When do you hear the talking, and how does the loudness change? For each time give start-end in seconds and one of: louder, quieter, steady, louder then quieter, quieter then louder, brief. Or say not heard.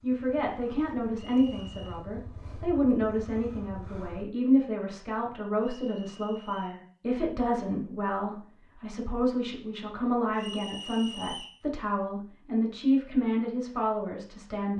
0.0-14.7 steady.